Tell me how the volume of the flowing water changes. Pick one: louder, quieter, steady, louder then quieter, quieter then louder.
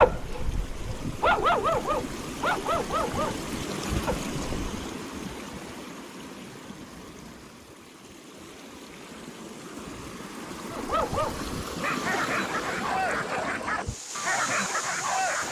quieter then louder.